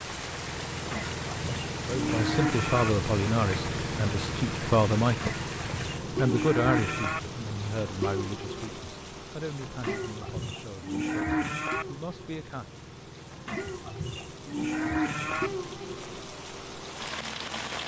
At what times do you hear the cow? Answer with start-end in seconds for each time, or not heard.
0.9-2.9, 5.2-7.2, 9.8-11.8, 13.4-15.5.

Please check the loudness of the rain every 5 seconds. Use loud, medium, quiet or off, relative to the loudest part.
loud, loud, medium, loud.